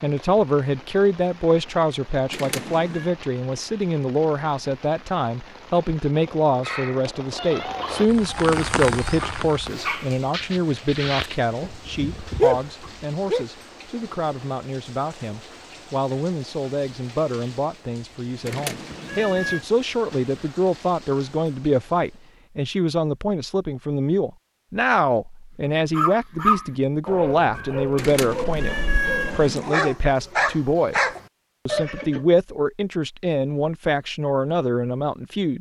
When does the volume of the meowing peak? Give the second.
29 s.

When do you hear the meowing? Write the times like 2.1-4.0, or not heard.
2.3-3.1, 18.4-19.6, 27.9-29.8.